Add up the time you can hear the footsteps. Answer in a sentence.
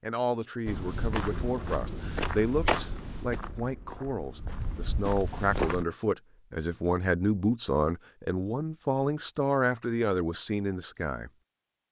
The footsteps can be heard for 5 seconds in total.